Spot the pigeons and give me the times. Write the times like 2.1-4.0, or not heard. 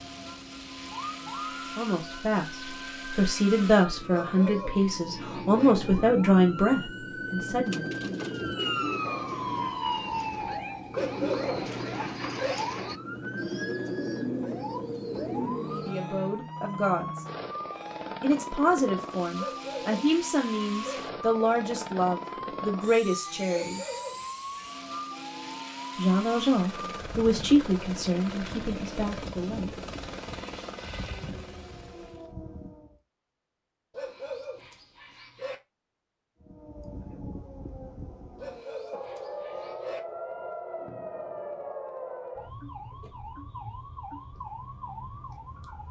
7.7-15.9.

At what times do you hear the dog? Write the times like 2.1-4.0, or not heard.
4.1-5.8, 10.9-12.6, 19.4-21.0, 23.5-25.0, 33.9-35.5, 38.4-40.0.